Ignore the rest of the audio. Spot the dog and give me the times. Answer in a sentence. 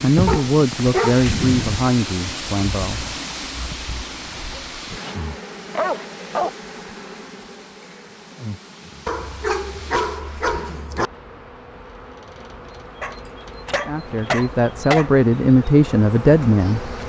The dog can be heard from 0.2 to 1.9 s, from 4.5 to 5.2 s, from 5.8 to 6.5 s, from 9.1 to 11.1 s and from 13.0 to 15.1 s.